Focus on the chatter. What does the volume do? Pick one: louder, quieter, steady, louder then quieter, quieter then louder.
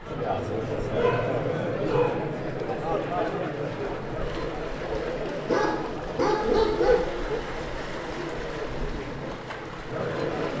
quieter.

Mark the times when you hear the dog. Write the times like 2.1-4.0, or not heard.
0.9-2.2, 5.5-7.0.